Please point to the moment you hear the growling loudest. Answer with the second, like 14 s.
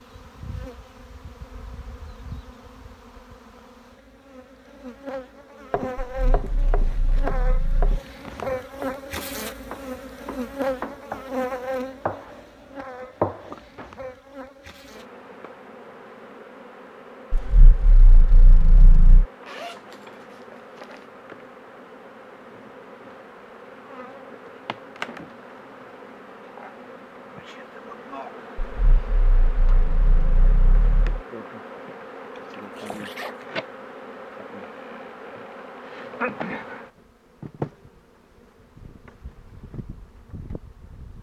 19 s.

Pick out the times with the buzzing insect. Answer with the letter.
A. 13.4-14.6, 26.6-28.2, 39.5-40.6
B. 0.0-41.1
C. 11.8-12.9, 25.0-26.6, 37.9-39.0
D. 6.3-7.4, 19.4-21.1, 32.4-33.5
B.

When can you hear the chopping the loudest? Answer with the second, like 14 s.
13 s.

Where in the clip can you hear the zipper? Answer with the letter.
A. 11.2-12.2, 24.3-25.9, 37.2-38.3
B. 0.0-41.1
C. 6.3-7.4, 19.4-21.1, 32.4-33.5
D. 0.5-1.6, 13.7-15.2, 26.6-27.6
C.